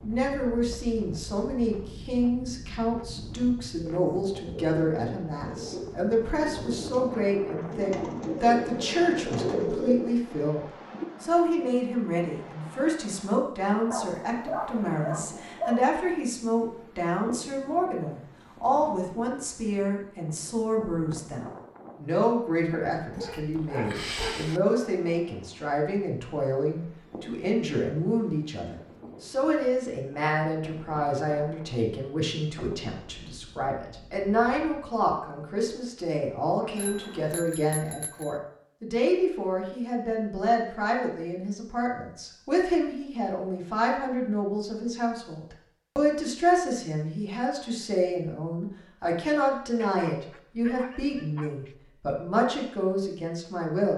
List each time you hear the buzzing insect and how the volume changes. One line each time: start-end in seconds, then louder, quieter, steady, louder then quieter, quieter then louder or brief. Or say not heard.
not heard.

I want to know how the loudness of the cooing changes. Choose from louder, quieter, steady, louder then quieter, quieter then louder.
louder.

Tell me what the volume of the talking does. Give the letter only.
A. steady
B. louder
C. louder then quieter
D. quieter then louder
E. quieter
A.